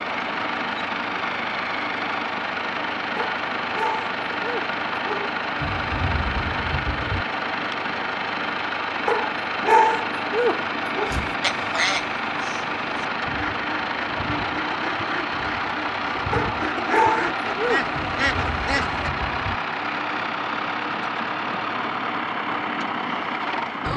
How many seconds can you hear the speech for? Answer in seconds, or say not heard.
not heard.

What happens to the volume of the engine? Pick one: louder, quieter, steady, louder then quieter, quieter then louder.
steady.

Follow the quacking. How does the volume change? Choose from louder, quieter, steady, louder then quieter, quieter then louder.
quieter then louder.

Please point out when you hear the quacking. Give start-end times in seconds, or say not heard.
11.1-19.1.